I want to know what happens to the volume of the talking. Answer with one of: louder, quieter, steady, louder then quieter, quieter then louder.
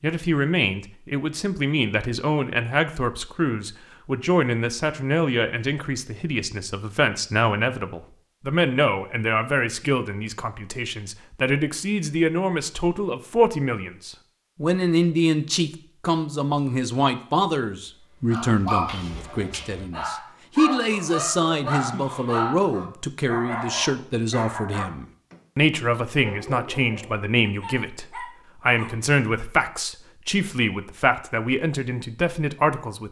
steady.